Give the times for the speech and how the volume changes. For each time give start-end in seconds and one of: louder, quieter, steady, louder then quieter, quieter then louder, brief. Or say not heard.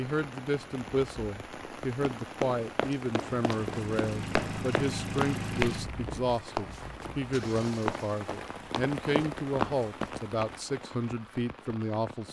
0.0-12.2 steady.